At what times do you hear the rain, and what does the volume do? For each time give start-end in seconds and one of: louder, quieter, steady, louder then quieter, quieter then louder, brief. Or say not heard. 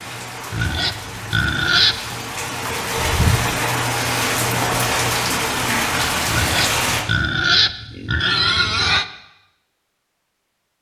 0.0-7.0 louder.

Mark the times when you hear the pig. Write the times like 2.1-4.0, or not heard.
0.5-2.3, 6.2-9.1.